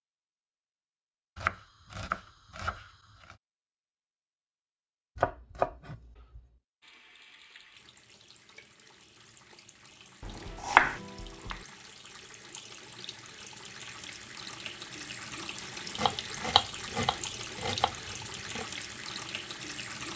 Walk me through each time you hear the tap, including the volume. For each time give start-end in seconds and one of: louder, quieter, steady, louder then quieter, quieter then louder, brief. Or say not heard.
6.8-20.1 louder.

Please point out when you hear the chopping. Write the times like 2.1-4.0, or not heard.
1.4-3.4, 5.2-6.4, 10.2-11.6, 15.9-18.6.